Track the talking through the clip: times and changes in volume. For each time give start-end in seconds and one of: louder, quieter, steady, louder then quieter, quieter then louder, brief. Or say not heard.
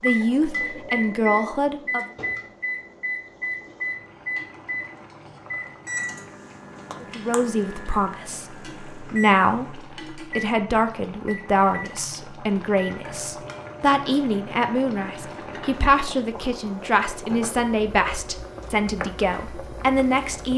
0.0-2.0 brief
7.0-20.5 steady.